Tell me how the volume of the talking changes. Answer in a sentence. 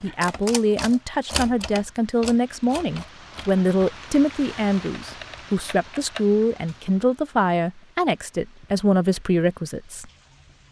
The volume of the talking stays about the same.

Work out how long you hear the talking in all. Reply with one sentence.
The talking can be heard for 10 seconds in total.